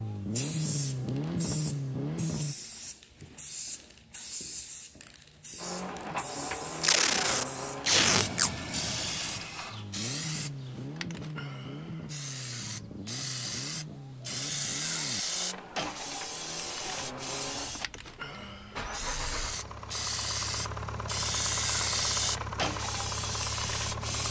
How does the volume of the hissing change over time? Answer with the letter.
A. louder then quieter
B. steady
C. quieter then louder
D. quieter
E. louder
E.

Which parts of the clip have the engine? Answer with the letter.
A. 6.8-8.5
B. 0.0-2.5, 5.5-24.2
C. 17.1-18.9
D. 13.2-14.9
B.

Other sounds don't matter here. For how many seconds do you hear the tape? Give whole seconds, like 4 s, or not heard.
2 s.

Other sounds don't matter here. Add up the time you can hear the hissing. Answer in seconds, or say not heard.
24 s.